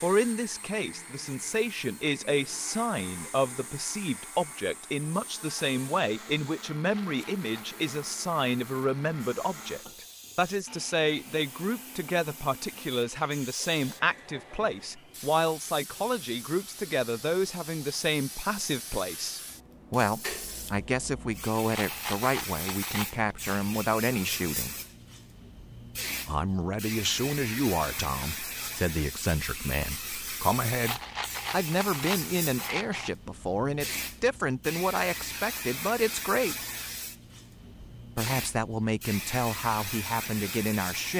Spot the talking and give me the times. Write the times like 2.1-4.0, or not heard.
0.0-24.8, 26.2-36.5, 38.1-41.1.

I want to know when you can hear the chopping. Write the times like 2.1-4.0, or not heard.
not heard.